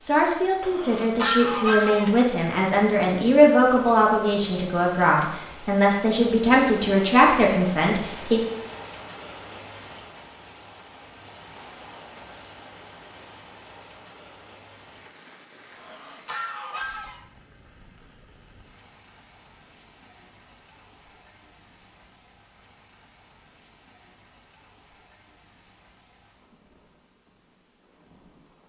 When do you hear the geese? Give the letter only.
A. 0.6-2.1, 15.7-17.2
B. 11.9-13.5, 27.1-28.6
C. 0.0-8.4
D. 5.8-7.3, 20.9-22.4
A.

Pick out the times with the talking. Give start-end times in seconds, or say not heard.
0.0-8.4.